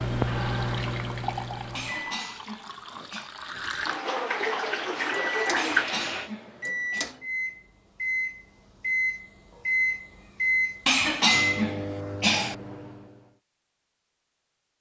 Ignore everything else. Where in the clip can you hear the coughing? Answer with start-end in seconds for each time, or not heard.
1.8-3.3, 5.5-7.0, 10.8-12.6.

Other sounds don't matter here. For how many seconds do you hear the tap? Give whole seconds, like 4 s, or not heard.
6 s.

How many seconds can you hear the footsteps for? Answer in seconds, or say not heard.
not heard.